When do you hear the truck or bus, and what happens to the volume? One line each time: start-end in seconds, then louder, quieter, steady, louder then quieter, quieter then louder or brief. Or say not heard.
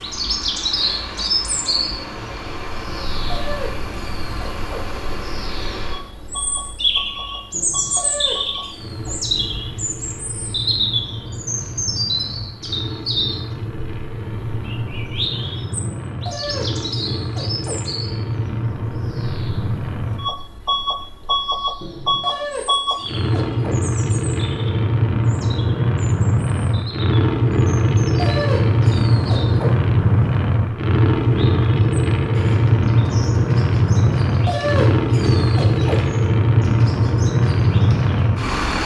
0.0-38.8 louder.